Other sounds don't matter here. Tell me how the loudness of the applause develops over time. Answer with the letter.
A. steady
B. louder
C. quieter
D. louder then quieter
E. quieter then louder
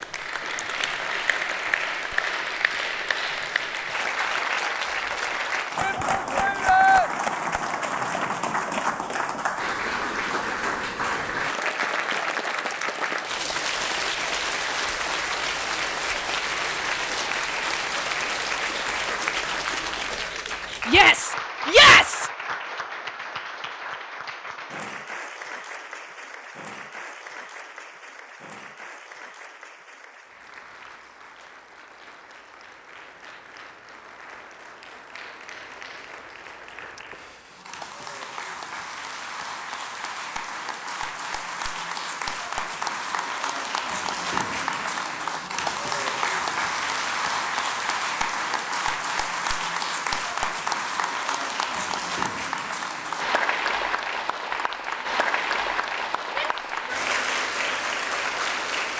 E.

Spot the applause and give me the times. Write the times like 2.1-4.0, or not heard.
0.0-58.9.